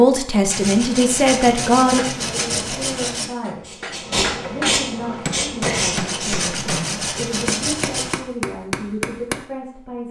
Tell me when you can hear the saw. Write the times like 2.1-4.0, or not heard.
0.5-3.3, 5.6-8.2.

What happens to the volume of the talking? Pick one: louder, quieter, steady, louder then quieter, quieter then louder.
quieter.